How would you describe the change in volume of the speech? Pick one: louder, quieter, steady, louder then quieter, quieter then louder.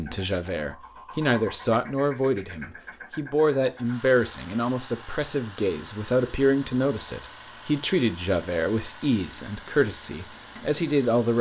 steady.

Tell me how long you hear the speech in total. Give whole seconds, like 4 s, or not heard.
11 s.